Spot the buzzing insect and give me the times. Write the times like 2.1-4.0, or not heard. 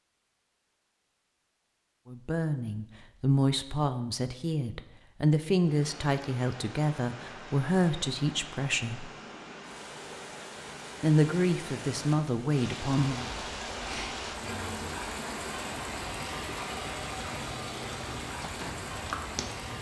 13.1-19.7.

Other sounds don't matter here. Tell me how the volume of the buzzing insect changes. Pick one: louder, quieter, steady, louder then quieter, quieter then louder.
quieter then louder.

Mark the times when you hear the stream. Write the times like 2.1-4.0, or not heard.
5.6-19.7.